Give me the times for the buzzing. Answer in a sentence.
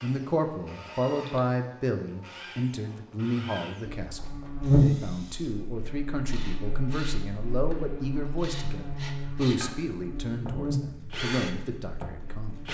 The buzzing can be heard from 3.9 to 12.6 s.